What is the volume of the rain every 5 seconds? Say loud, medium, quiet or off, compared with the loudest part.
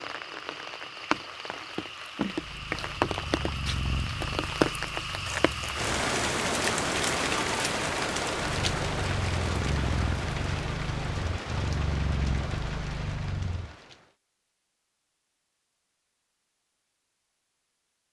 loud, loud, medium, off.